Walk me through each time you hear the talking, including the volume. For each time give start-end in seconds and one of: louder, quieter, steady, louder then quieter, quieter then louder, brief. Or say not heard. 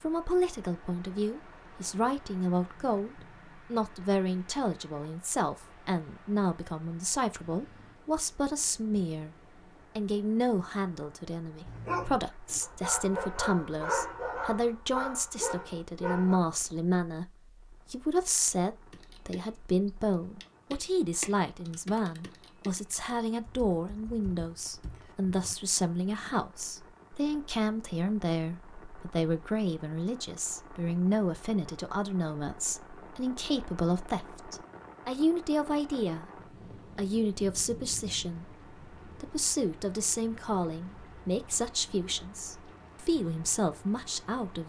0.0-9.3 steady
9.9-36.2 steady
37.0-44.6 steady.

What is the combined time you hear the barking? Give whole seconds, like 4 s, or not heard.
5 s.